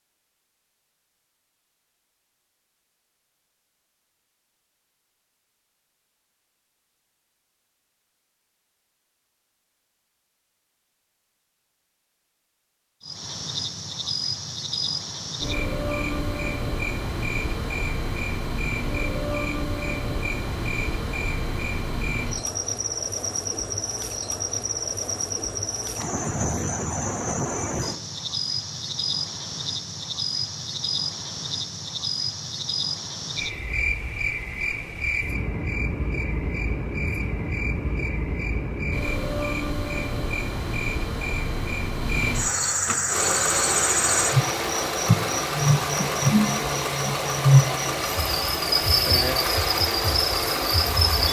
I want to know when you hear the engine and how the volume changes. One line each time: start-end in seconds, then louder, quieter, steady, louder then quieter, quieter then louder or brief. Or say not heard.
43.0-51.2 steady.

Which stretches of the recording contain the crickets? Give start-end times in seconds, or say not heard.
13.0-51.2.